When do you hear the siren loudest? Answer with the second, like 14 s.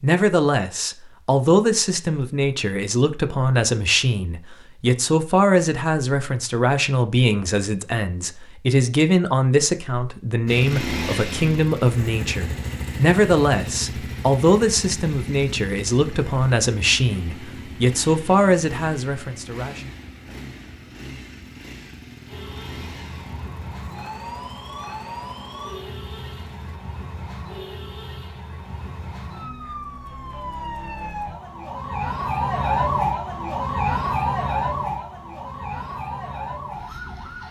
33 s.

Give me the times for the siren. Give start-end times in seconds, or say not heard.
22.2-37.4.